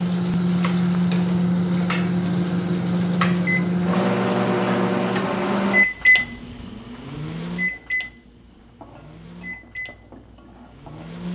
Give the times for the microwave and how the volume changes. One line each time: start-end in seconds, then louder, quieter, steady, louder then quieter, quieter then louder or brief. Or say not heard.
0.0-11.3 quieter.